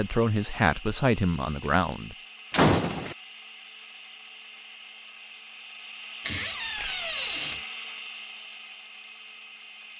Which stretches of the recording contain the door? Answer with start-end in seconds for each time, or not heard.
2.5-3.1, 6.2-7.6.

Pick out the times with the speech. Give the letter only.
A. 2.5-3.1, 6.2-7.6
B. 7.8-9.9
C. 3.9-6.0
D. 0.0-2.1
D.